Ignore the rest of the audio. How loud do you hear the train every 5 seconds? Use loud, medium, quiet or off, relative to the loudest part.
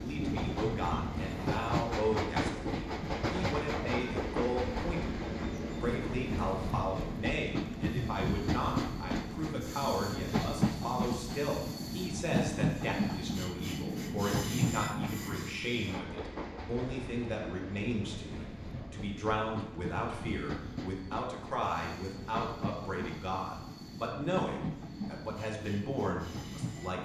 loud, loud, loud, medium, medium, medium.